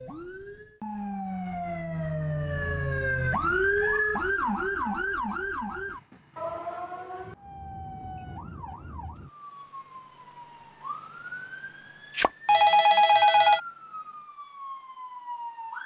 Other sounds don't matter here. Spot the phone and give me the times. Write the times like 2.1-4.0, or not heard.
12.2-13.6.